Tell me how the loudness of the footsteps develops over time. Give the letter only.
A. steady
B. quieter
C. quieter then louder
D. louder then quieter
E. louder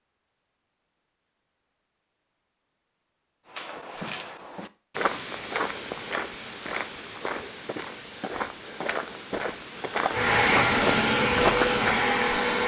E.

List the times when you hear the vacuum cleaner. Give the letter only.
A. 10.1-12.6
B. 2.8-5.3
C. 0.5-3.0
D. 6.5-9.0
A.